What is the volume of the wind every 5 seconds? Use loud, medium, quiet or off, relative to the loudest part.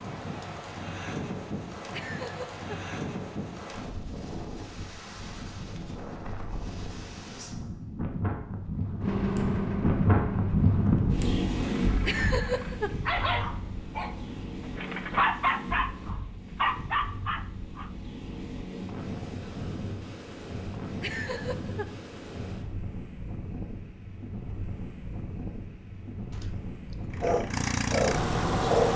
medium, medium, loud, medium, medium, medium.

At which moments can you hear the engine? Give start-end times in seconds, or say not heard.
9.0-12.8, 27.1-28.9.